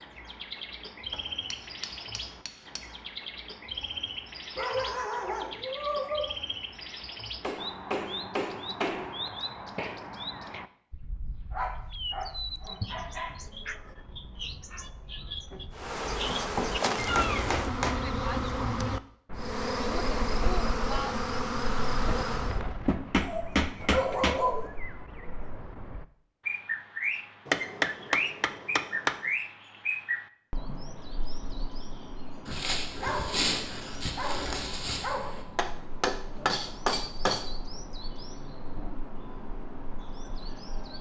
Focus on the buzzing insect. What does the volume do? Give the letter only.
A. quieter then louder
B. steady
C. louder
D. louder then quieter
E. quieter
B.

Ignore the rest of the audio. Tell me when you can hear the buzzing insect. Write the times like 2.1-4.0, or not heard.
15.7-22.6.